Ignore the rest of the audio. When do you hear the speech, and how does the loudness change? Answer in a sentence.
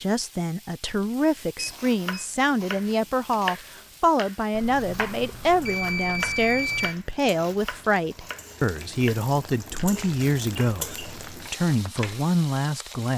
The speech can be heard from 0.0 to 13.1 s, at a steady volume.